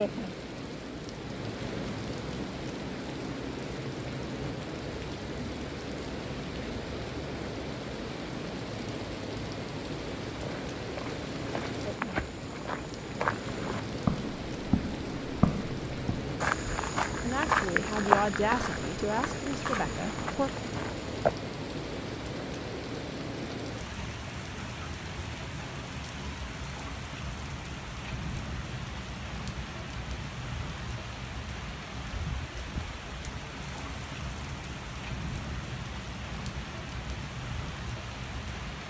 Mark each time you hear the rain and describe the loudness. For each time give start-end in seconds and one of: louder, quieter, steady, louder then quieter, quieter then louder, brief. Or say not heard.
0.0-38.8 steady.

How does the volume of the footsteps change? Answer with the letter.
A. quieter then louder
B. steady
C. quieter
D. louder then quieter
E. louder
D.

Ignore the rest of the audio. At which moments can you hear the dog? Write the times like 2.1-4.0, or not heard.
not heard.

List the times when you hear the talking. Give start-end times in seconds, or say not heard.
17.2-20.5.